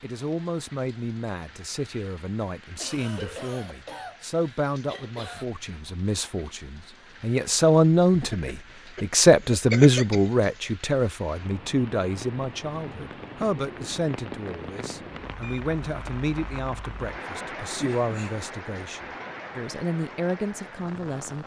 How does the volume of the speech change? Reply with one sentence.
The volume of the speech goes up, then down.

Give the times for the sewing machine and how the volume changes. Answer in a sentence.
The sewing machine can't be heard in this clip.